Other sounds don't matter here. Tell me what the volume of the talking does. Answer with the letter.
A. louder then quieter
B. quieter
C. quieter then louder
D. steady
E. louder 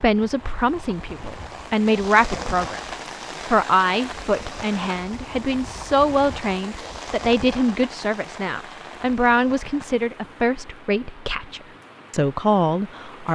D.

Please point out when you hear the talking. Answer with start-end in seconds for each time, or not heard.
0.0-13.3.